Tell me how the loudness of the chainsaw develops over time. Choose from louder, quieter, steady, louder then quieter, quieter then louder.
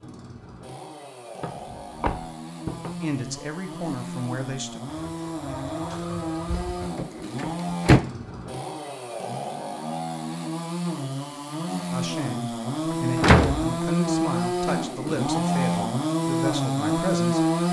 louder.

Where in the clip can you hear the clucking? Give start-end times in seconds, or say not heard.
4.8-6.9.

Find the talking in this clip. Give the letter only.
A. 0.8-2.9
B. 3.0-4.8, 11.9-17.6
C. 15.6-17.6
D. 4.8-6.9
B.